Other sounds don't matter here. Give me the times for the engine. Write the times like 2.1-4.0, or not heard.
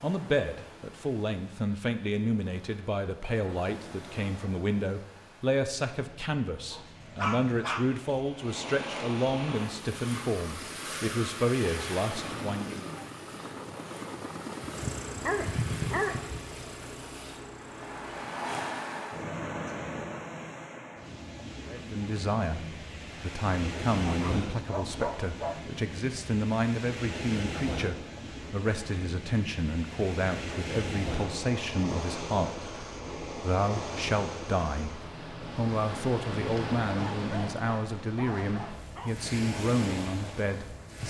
9.6-18.3.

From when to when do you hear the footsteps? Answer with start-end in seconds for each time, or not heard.
not heard.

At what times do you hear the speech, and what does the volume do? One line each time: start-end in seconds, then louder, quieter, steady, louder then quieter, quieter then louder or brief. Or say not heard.
0.0-12.8 steady
21.6-41.0 steady.